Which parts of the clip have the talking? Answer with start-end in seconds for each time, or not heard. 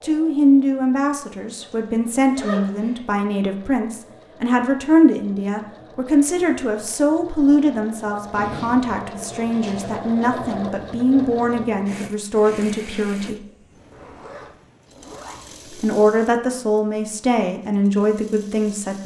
0.0-13.4, 15.7-19.0.